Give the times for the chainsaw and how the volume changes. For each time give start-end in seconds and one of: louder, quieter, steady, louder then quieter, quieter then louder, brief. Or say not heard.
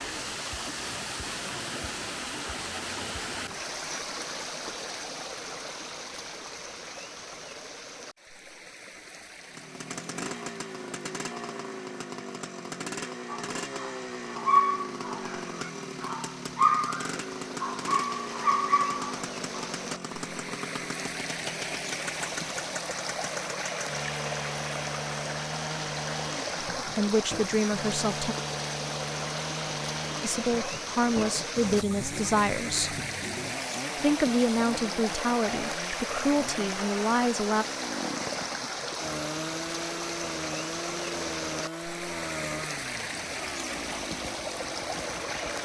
9.4-45.6 steady.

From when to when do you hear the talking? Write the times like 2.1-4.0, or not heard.
26.9-28.4, 30.2-33.0, 34.0-37.6.